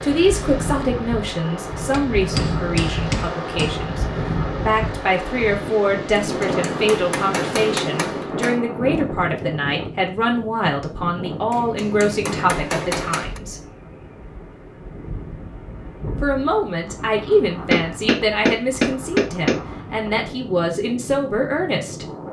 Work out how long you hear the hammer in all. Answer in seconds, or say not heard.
8 s.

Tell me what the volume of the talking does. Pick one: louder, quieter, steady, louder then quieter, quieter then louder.
steady.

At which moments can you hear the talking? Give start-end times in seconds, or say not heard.
0.0-13.6, 16.2-22.1.